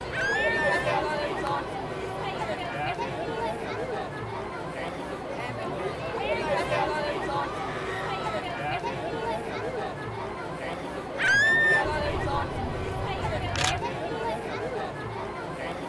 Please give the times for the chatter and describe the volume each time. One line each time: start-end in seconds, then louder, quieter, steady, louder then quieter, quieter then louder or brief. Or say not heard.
0.0-15.8 steady.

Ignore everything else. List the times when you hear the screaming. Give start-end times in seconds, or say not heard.
0.1-0.9, 7.4-8.4, 11.2-11.8.